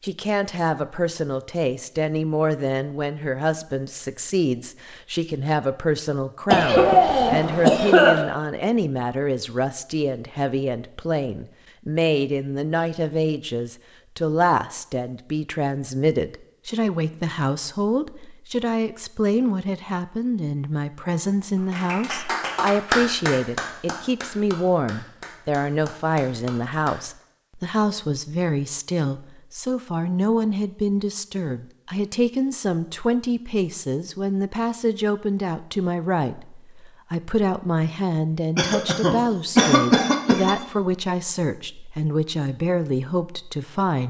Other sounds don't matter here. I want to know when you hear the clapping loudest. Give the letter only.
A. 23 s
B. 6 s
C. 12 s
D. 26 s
A.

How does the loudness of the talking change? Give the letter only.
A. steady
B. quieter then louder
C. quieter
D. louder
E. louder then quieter
A.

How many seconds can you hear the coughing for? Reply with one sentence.
You can hear the coughing for 4 seconds altogether.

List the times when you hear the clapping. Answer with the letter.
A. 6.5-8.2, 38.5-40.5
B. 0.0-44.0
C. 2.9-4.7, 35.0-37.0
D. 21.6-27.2
D.